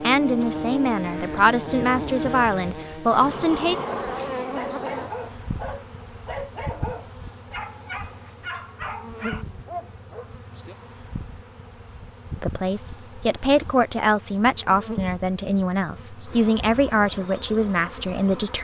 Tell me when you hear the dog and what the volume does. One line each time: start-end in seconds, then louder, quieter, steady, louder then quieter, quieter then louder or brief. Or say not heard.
3.9-10.3 steady.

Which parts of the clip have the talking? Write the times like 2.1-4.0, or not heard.
0.0-3.8, 12.3-18.6.